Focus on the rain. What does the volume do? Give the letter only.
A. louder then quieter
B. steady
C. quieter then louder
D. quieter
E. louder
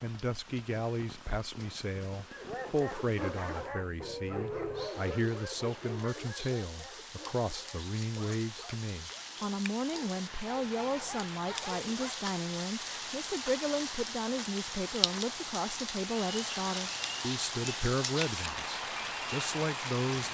E.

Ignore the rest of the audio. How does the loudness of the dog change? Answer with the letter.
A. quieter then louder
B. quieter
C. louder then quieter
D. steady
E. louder
A.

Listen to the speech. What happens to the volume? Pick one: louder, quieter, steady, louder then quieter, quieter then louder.
steady.